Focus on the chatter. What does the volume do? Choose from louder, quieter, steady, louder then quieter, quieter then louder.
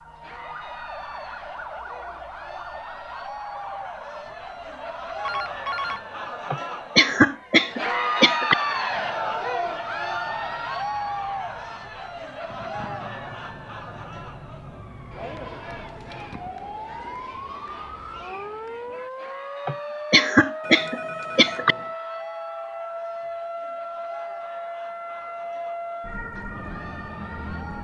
louder then quieter.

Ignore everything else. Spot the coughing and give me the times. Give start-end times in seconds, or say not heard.
6.5-8.6, 19.6-21.8.